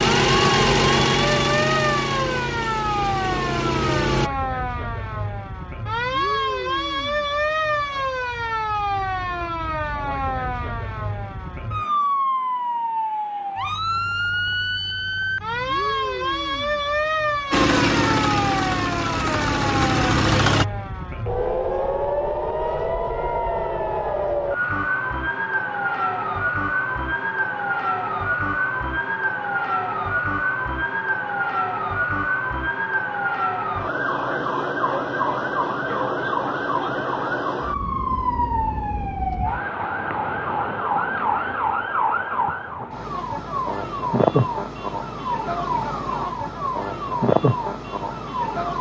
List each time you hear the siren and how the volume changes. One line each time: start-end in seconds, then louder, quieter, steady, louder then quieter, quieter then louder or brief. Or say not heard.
0.0-48.7 steady.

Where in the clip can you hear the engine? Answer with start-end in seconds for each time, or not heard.
0.0-4.3, 17.5-20.6.